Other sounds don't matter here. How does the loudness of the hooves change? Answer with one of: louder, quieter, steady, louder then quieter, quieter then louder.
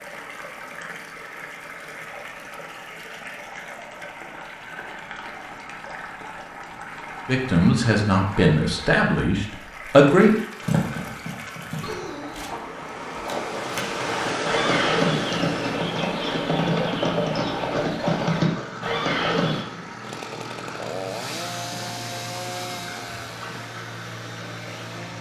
louder.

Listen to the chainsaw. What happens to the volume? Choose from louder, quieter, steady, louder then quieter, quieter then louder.
quieter.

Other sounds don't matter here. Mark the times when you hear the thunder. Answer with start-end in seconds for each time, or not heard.
not heard.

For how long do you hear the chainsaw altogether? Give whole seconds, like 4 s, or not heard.
5 s.